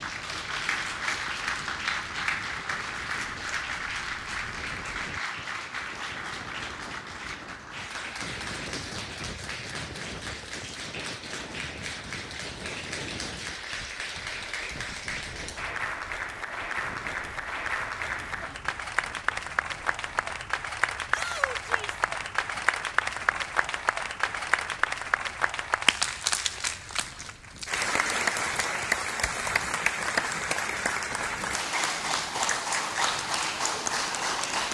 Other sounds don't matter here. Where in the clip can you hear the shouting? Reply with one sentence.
You can hear the shouting from 21.1 to 22.1 s.